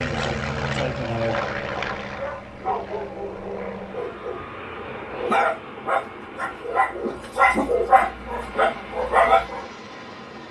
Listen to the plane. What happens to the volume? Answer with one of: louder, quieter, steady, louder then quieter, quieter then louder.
quieter.